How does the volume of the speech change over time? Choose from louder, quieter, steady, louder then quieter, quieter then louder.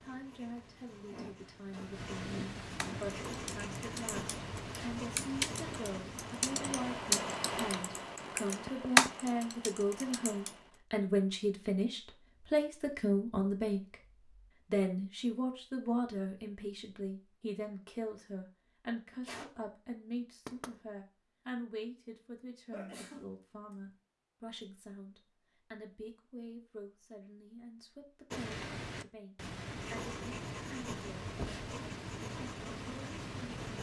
louder then quieter.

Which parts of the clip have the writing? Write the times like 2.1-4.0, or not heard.
0.0-8.0, 28.3-33.7.